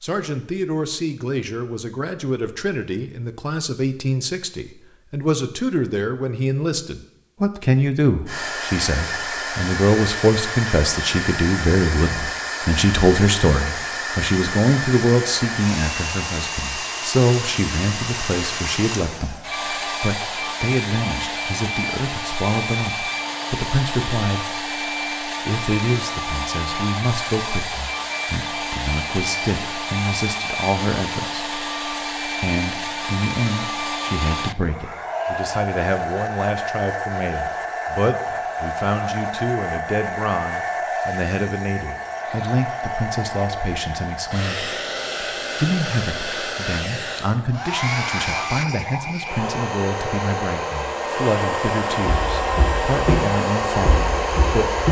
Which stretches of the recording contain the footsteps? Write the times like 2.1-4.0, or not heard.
52.0-54.8.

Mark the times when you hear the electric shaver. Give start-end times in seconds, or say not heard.
not heard.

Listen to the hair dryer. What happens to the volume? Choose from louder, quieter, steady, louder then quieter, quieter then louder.
steady.